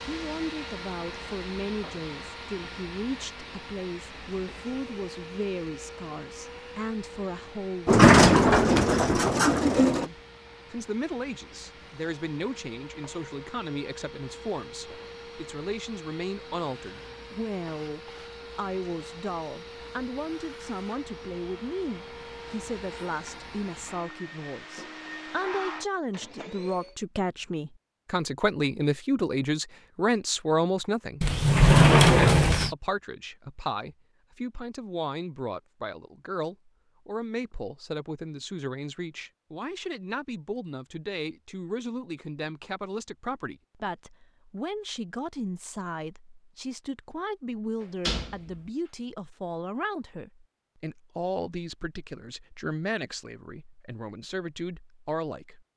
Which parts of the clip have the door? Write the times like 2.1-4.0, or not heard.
7.8-10.1, 31.2-32.8, 47.8-48.6.